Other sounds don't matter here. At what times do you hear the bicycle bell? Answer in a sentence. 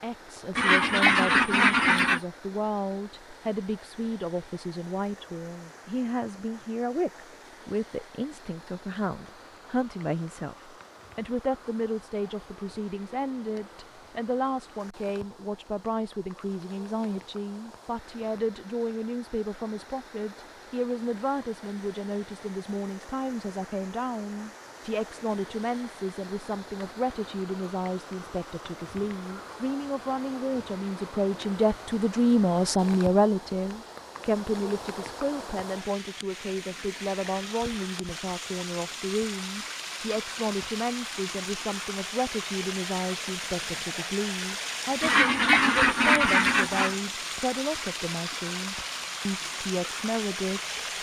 You can't hear the bicycle bell here.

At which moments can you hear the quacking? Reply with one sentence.
The quacking can be heard from 0.6 to 2.2 s and from 45.0 to 47.0 s.